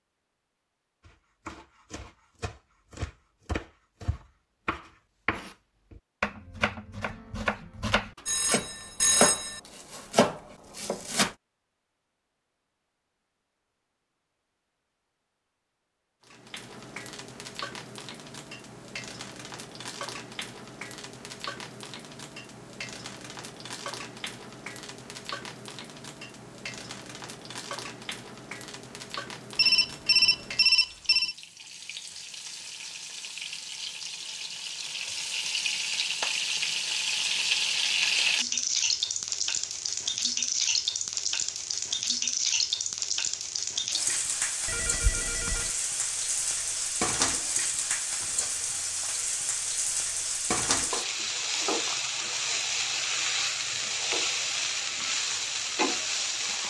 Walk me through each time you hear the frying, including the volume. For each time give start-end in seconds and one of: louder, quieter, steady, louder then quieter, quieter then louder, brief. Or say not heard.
16.2-56.6 louder.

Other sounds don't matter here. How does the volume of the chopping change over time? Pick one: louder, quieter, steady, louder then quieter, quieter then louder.
louder.